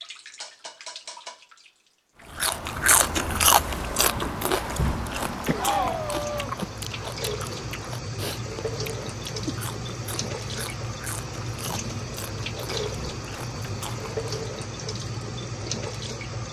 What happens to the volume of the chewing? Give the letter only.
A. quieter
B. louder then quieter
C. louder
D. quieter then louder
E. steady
A.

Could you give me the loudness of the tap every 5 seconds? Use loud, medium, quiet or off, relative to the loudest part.
medium, loud, loud, loud.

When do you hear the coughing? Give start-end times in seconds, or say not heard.
5.5-6.8.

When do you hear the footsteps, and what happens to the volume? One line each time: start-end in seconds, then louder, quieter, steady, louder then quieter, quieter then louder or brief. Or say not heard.
not heard.